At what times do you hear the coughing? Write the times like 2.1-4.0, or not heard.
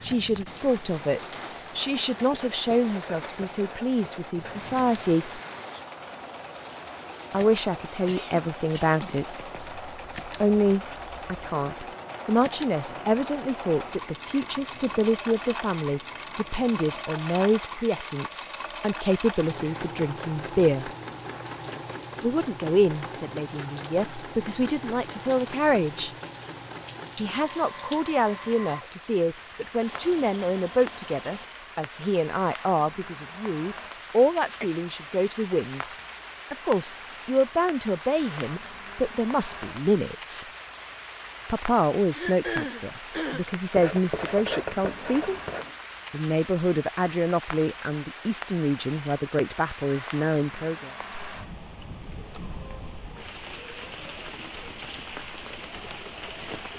8.1-9.0, 34.0-34.7, 42.1-43.5.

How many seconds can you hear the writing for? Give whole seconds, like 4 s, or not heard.
4 s.